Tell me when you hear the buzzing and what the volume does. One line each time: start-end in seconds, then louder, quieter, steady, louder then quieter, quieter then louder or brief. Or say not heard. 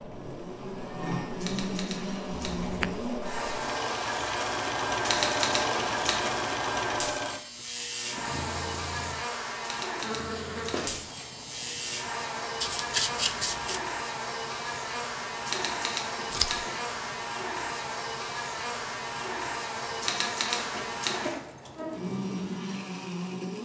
0.0-23.6 steady.